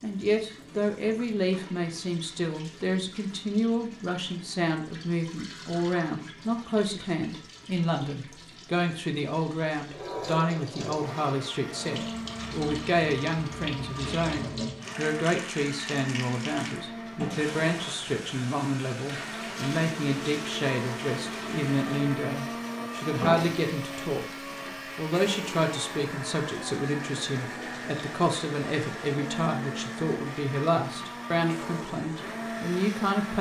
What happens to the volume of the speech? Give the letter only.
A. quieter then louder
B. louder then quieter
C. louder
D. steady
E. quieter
D.